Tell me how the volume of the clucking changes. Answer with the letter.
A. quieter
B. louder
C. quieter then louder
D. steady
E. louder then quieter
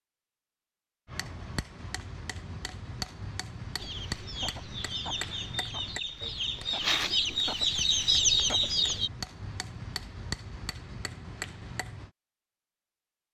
B.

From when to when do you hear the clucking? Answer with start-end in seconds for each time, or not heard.
3.8-9.1.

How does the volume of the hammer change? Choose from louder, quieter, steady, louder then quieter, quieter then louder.
steady.